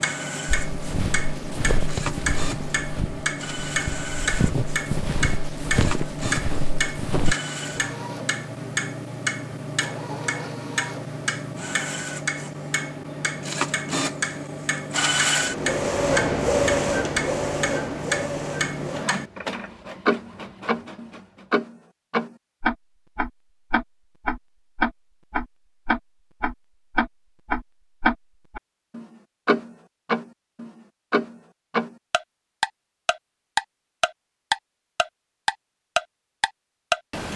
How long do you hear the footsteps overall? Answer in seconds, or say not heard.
7 s.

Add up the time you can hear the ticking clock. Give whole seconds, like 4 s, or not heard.
37 s.